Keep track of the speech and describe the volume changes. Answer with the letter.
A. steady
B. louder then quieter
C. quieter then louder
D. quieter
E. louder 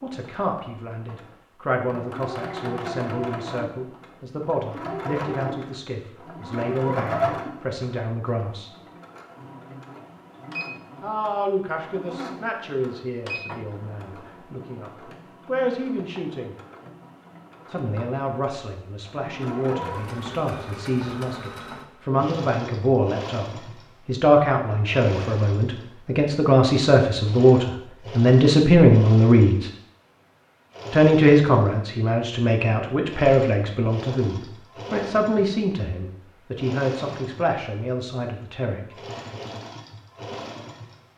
B.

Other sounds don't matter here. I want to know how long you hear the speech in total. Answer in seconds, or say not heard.
34 s.